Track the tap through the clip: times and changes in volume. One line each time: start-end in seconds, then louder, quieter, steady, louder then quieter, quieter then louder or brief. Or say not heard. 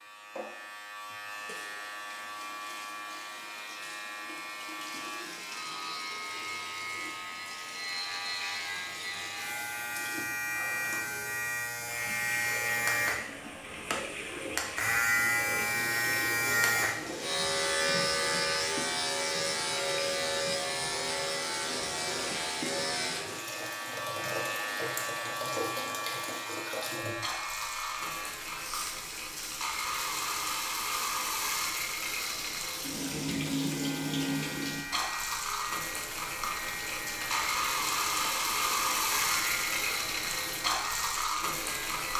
0.0-42.1 louder.